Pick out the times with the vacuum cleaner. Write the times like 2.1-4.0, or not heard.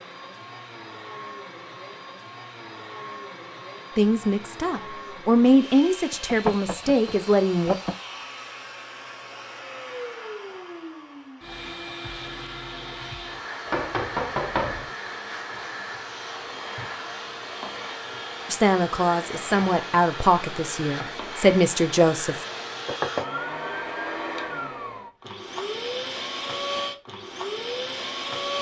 0.0-28.5.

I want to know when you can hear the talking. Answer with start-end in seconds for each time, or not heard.
4.0-7.8, 18.5-22.4.